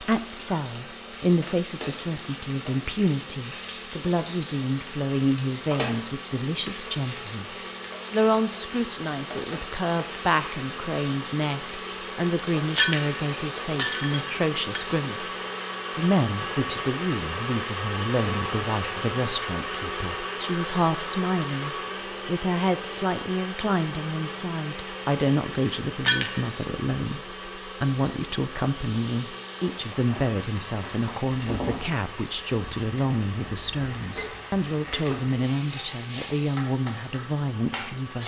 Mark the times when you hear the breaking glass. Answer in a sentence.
You can hear the breaking glass from 12.8 to 14.8 s and from 26.1 to 26.6 s.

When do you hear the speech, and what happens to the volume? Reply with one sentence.
You can hear the speech from 0.0 to 38.2 s, at a steady volume.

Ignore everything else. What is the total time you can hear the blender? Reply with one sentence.
You can hear the blender for 38 seconds altogether.